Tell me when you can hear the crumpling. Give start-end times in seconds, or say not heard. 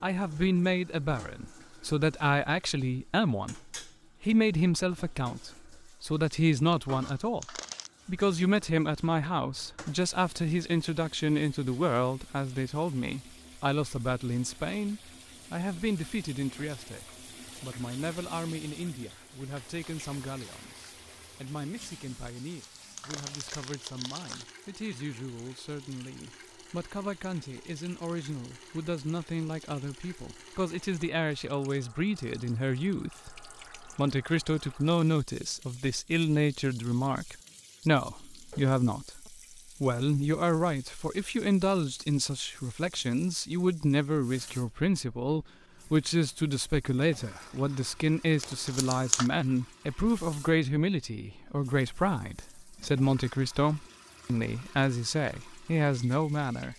6.7-7.9, 22.2-24.5, 48.4-49.3.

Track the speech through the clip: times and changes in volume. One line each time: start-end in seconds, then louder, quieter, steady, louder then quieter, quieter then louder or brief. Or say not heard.
0.0-56.7 quieter then louder.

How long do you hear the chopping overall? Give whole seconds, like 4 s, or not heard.
not heard.